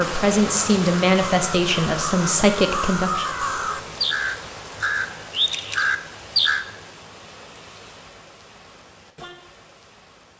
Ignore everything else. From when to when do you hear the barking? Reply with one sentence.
You can't hear the barking here.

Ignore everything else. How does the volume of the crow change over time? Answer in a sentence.
The loudness of the crow goes up.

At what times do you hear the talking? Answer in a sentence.
The talking can be heard from 0.0 to 3.3 s.